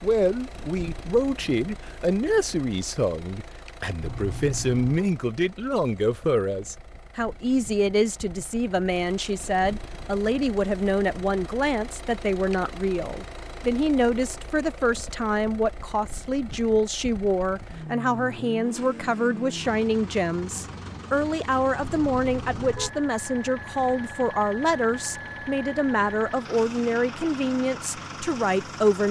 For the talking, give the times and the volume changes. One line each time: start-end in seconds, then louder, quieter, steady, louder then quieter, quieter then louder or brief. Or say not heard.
0.0-29.0 steady.